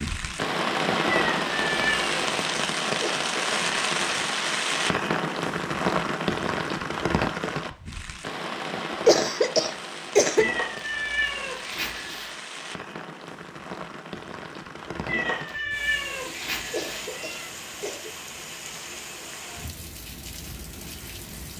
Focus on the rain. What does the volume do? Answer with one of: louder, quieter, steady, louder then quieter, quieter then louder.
quieter.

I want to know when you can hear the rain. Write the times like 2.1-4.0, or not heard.
0.0-21.5.